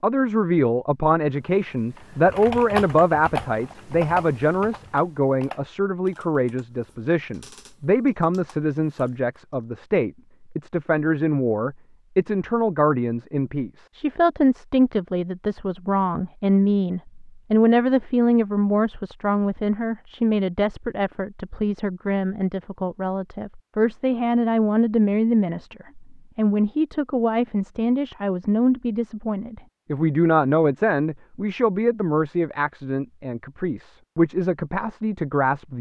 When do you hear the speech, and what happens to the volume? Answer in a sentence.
You can hear the speech from 0.0 to 35.7 s, at a steady volume.